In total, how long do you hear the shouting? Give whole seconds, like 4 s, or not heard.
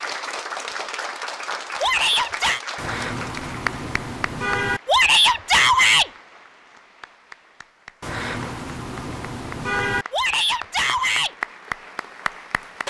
3 s.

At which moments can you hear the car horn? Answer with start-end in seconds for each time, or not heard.
2.8-4.8, 8.0-10.1.